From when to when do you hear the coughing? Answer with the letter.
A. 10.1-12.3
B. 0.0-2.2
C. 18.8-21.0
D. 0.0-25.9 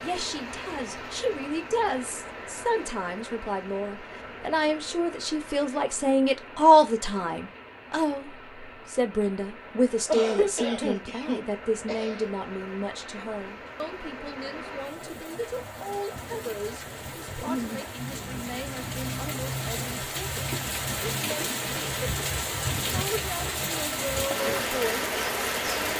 A.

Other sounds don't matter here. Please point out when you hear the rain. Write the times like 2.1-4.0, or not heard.
0.0-25.9.